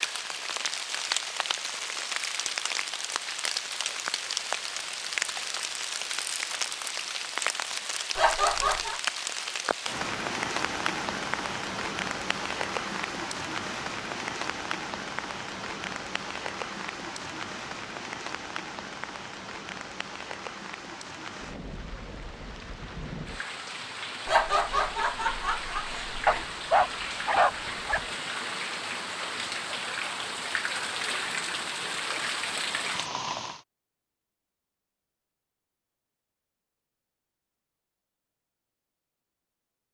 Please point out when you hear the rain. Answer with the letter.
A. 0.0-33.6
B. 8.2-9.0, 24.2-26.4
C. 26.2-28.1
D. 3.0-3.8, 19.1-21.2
A.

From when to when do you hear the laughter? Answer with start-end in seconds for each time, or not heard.
8.2-9.0, 24.2-26.4.